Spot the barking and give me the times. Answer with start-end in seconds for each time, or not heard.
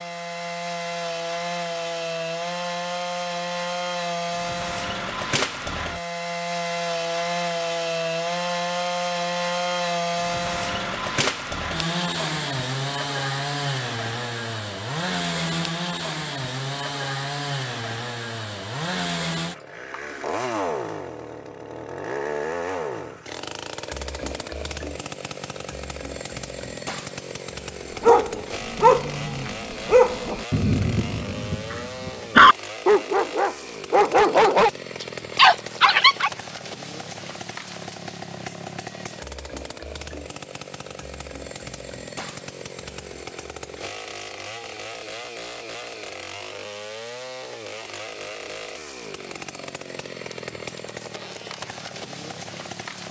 28.0-36.3.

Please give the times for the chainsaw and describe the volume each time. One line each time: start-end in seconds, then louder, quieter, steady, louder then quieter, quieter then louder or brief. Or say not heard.
0.0-53.0 quieter.